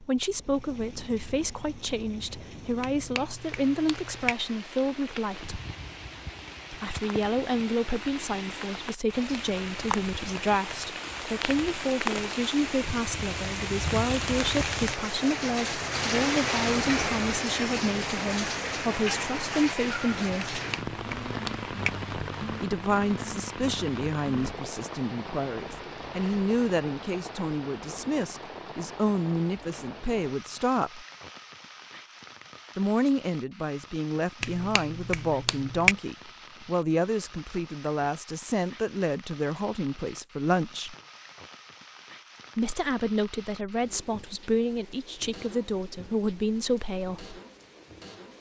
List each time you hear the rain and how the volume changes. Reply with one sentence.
The rain can be heard from 0.0 to 48.3 s, getting louder then quieter.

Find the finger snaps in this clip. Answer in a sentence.
You can hear the finger snaps from 2.8 to 4.3 s, from 20.4 to 21.9 s and from 34.4 to 36.0 s.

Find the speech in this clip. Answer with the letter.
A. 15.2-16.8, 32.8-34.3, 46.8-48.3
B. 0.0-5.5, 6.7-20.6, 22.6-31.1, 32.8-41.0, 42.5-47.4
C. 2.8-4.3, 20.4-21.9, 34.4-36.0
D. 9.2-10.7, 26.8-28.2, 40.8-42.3
B.